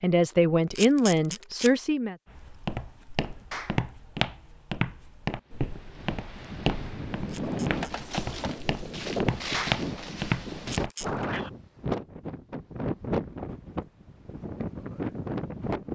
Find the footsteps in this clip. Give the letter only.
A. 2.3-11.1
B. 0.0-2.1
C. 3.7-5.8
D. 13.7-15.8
A.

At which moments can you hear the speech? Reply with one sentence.
You can hear the speech from 0.0 to 2.1 s.